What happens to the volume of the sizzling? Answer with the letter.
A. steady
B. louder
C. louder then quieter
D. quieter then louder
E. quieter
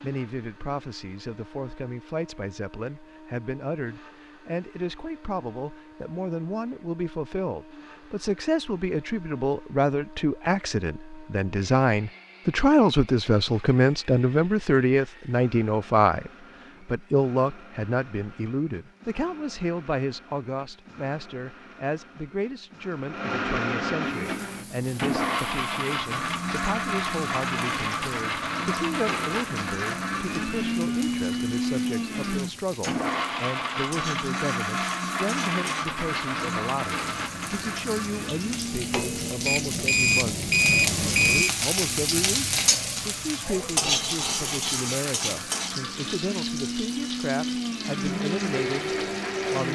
C.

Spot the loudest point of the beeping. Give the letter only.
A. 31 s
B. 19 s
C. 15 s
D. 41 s
D.